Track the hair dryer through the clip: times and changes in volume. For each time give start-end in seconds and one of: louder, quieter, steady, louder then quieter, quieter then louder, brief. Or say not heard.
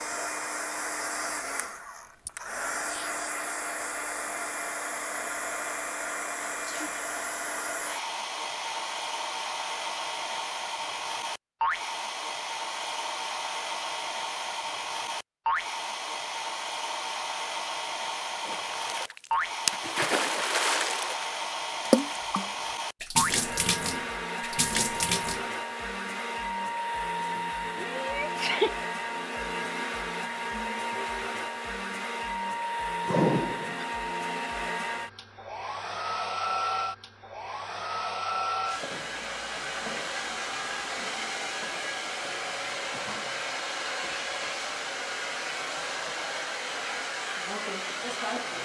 0.0-48.6 steady.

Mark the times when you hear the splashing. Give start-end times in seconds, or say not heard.
18.4-25.4.